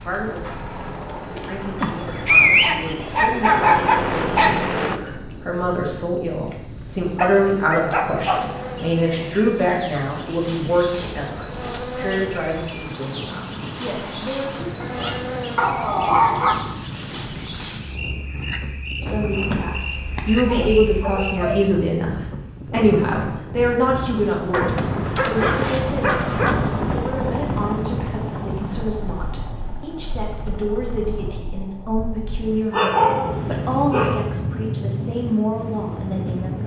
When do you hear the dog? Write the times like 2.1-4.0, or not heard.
1.8-4.5, 7.2-8.6, 14.8-16.6, 19.3-21.6, 24.5-26.6, 32.7-34.2.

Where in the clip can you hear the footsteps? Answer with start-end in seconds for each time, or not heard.
not heard.